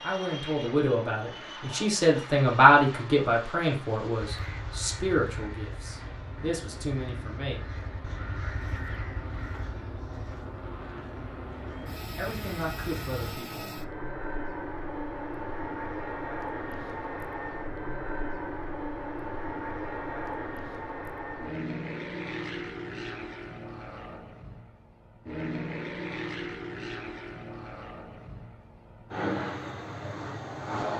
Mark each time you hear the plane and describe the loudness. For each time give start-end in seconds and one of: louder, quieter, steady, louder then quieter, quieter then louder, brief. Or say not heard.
0.0-30.9 louder.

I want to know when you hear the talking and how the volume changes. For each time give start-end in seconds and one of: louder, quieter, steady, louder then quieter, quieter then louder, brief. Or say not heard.
0.0-7.6 louder then quieter
12.2-13.7 brief.